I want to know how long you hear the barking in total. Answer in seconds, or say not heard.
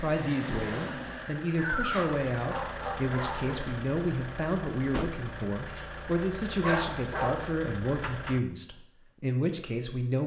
3 s.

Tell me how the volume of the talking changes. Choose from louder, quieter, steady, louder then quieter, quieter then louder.
steady.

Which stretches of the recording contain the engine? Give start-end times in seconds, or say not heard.
0.0-8.4.